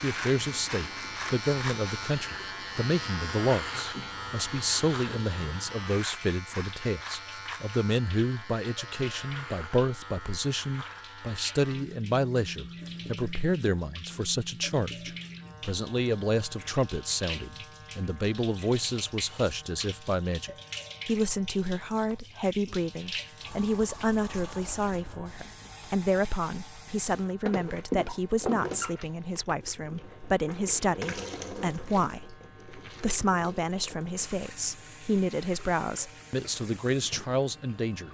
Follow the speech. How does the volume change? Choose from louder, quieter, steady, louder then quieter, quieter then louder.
steady.